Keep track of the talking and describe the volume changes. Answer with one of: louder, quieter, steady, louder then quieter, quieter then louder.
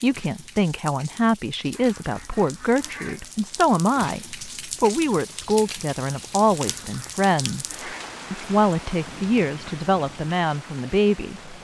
steady.